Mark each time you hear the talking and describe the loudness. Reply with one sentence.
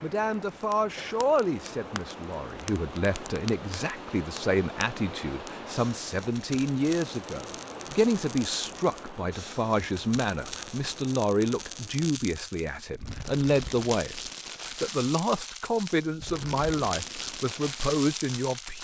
You can hear the talking from 0.0 to 18.7 s, at a steady volume.